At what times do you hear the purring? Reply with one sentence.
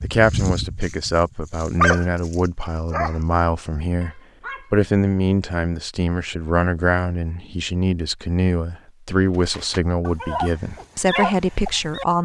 You can't hear the purring here.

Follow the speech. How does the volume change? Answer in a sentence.
The volume of the speech stays about the same.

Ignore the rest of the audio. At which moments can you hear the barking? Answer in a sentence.
You can hear the barking from 0.0 to 3.2 s, from 4.0 to 4.7 s and from 9.5 to 12.1 s.